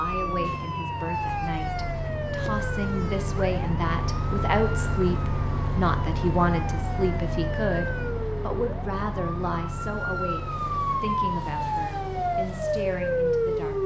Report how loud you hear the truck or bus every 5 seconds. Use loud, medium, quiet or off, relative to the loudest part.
loud, loud, medium.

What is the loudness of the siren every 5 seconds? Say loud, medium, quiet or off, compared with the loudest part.
medium, medium, loud.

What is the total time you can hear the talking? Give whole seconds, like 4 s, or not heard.
14 s.